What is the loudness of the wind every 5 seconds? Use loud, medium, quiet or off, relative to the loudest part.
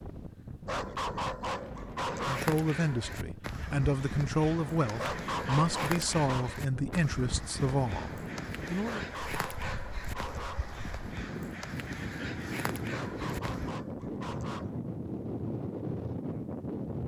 medium, medium, loud, loud.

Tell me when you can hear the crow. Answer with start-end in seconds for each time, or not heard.
2.1-13.8.